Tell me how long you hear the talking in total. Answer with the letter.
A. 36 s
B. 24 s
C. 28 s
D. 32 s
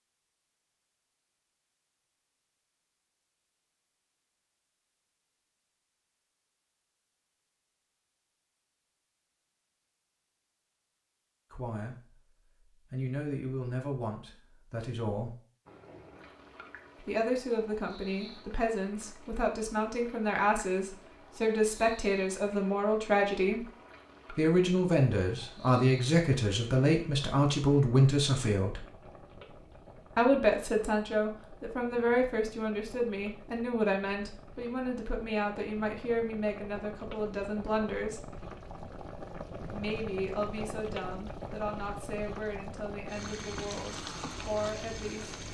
C.